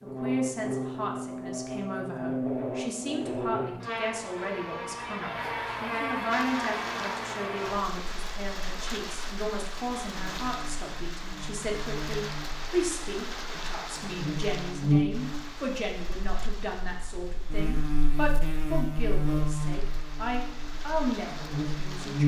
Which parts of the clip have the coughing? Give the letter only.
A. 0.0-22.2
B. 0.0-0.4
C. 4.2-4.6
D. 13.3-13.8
D.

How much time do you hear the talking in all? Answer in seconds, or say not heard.
22 s.